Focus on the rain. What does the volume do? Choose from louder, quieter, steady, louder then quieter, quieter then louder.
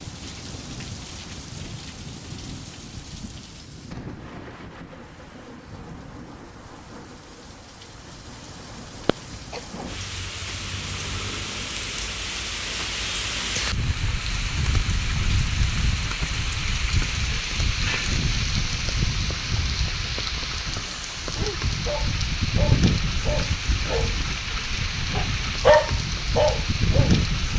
louder.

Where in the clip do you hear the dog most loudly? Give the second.
26 s.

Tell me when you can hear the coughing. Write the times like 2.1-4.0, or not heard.
8.9-9.8.